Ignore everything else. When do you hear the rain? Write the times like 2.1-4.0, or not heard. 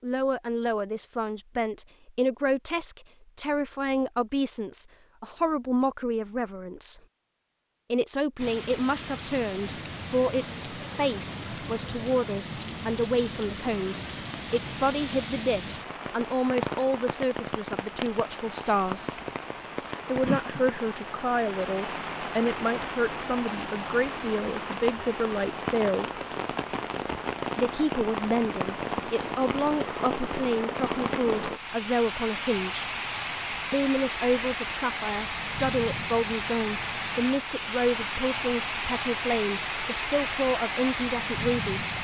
8.3-41.9.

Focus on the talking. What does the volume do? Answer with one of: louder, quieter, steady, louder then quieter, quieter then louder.
steady.